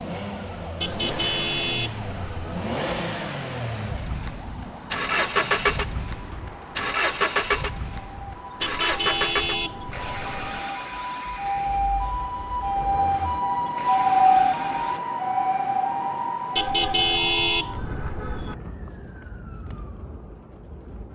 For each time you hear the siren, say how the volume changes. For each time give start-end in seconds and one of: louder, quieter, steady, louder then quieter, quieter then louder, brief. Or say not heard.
0.0-21.1 louder then quieter.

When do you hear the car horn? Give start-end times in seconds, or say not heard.
0.8-2.6, 8.6-10.6, 16.6-18.6.